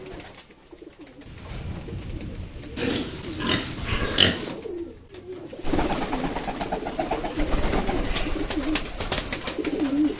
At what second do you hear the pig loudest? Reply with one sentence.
The volume of the pig peaks at 4 seconds.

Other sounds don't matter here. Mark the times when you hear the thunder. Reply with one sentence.
You can hear the thunder from 1.2 to 4.0 s.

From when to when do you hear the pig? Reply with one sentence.
You can hear the pig from 2.8 to 4.5 s.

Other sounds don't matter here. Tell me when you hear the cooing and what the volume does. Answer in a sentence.
You can hear the cooing from 0.0 to 10.1 s, getting louder.